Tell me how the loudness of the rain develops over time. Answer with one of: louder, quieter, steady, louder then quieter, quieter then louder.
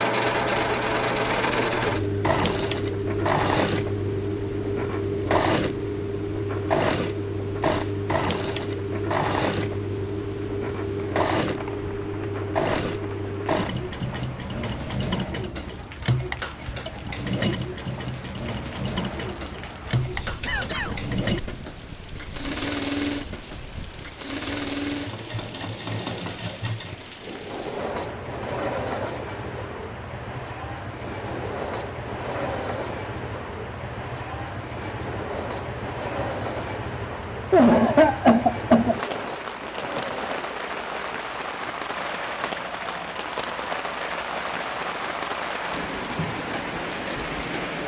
louder.